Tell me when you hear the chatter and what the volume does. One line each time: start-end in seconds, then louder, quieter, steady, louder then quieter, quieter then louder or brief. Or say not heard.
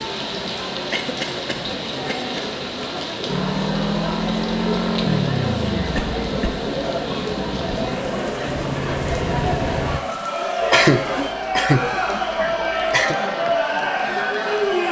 0.0-14.8 louder.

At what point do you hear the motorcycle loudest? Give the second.
5 s.